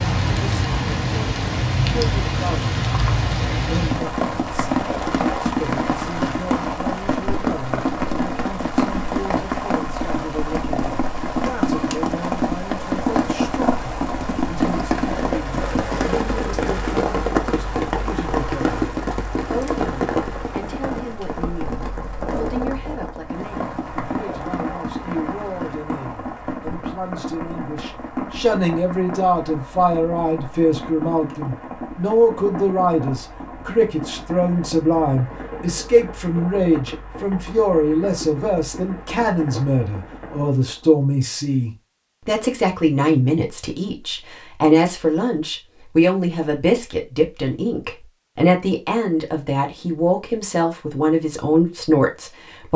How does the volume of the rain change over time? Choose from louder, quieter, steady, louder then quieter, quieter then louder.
quieter.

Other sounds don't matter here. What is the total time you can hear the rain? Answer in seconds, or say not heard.
41 s.